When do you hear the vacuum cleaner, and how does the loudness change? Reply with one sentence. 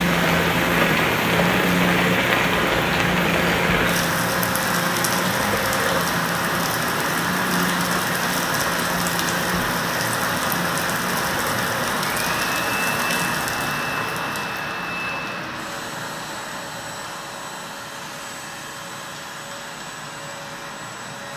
You can hear the vacuum cleaner from 0.0 to 21.3 s, getting quieter.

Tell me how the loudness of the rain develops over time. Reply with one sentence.
The loudness of the rain goes down.